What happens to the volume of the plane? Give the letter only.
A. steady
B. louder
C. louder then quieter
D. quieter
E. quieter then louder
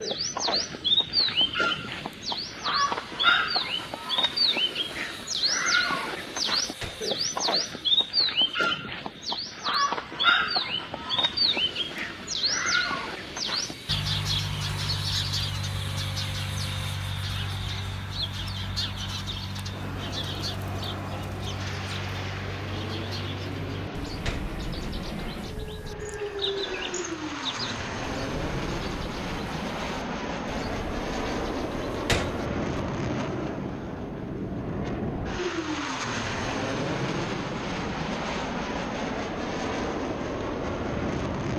B.